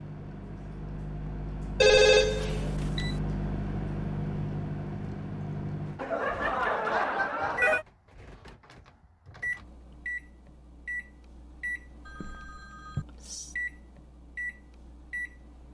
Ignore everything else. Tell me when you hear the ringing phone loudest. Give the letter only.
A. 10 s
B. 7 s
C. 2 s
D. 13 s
C.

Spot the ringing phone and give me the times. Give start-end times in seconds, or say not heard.
1.8-3.1, 6.0-7.8, 12.1-13.1.